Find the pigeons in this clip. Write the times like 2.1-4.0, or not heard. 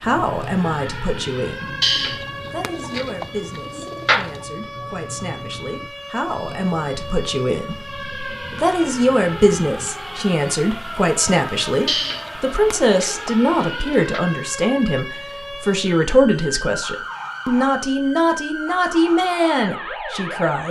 1.8-4.4, 11.8-14.2.